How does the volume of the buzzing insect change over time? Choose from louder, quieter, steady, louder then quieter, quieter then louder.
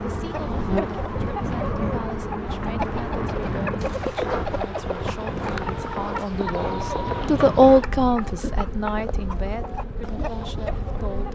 quieter.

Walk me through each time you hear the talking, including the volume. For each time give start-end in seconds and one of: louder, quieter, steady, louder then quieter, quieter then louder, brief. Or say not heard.
0.0-11.3 louder then quieter.